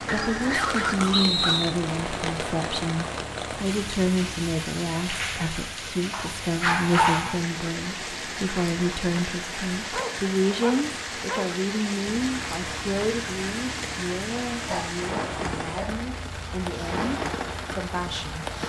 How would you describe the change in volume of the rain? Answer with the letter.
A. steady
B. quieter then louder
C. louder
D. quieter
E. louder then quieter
A.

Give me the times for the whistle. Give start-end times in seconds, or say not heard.
1.1-1.8.